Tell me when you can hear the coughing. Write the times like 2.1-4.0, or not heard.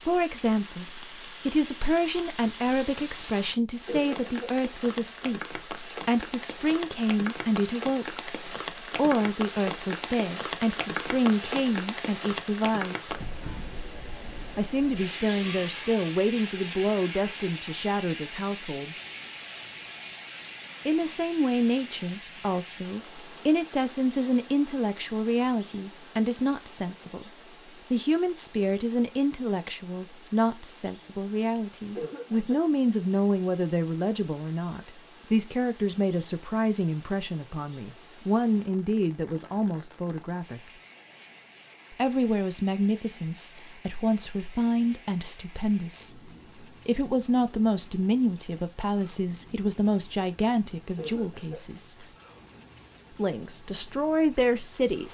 3.9-4.5, 31.9-32.6, 51.0-51.6.